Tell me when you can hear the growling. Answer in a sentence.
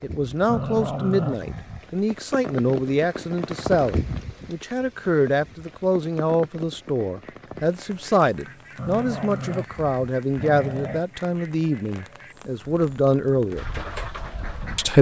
You can hear the growling from 0.5 to 1.9 s and from 8.8 to 11.1 s.